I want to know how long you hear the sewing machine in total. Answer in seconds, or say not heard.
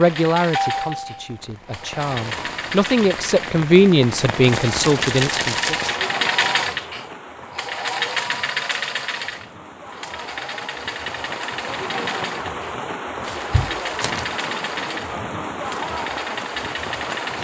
17 s.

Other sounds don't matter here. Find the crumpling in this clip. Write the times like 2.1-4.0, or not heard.
4.5-6.0, 13.2-14.2.